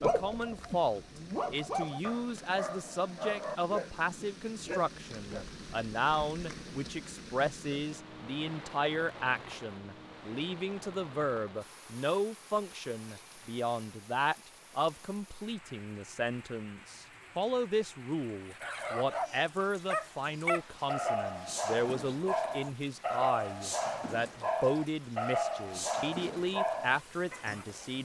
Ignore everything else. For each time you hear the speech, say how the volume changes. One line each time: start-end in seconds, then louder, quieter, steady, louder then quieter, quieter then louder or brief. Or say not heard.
0.0-28.0 steady.